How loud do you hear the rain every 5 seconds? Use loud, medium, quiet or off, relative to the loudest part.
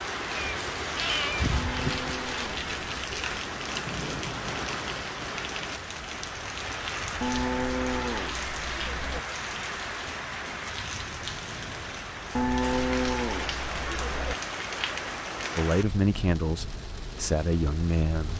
loud, loud, loud, medium.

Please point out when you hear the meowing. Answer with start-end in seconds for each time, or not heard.
0.3-2.1.